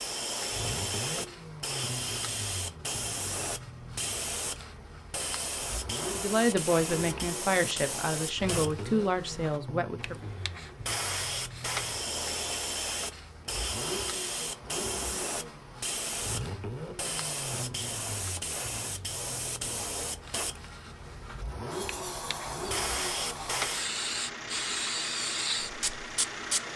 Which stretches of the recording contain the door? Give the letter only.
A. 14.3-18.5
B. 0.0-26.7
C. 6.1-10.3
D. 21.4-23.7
D.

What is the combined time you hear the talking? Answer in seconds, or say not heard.
4 s.